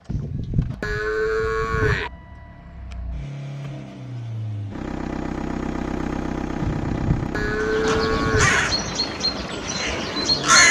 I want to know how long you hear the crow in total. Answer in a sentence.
You can hear the crow for 3 seconds altogether.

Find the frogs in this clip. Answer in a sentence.
The frogs can't be heard in this clip.